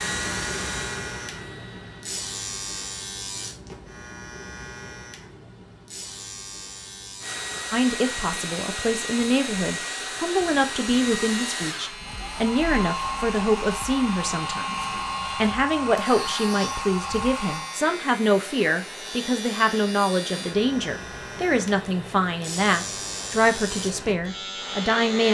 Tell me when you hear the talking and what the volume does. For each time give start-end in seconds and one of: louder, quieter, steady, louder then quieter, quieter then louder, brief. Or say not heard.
7.7-25.2 steady.